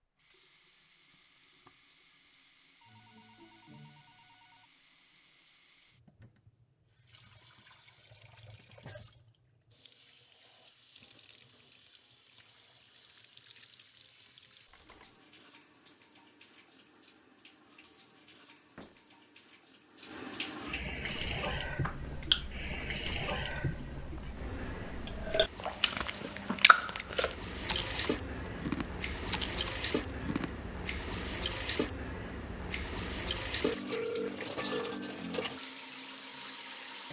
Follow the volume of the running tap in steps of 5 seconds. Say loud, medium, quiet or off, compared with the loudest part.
quiet, quiet, quiet, quiet, loud, loud, loud, loud.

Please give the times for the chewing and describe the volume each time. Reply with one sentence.
The chewing can be heard from 21.0 to 30.5 s, getting quieter then louder.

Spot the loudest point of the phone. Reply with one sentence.
The volume of the phone peaks at 34 seconds.